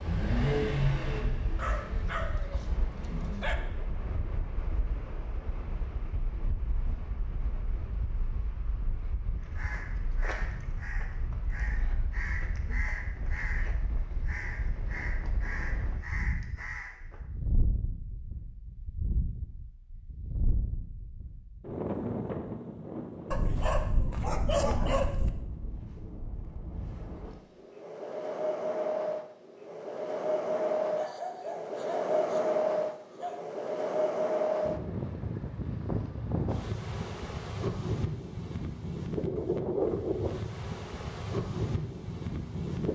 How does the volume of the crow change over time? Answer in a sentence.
The volume of the crow stays about the same.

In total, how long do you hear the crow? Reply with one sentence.
The crow can be heard for 8 seconds in total.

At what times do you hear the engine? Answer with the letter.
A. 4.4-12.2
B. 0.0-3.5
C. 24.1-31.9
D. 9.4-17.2
B.